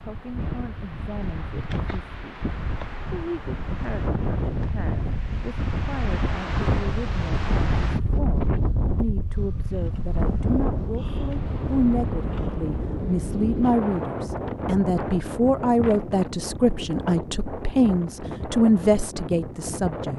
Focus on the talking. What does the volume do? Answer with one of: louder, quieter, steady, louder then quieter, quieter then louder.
louder.